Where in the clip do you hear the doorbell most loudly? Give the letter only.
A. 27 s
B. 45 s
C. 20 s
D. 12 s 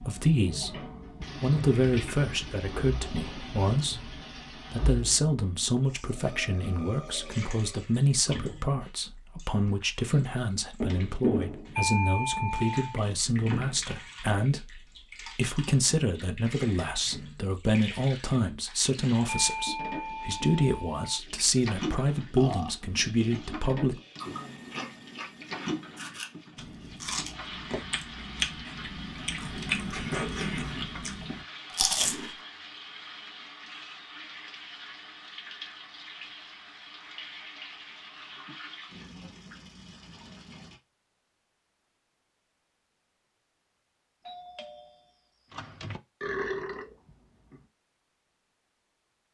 D.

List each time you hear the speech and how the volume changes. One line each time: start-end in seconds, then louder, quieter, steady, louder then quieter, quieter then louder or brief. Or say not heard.
0.0-0.8 brief
1.4-23.9 steady.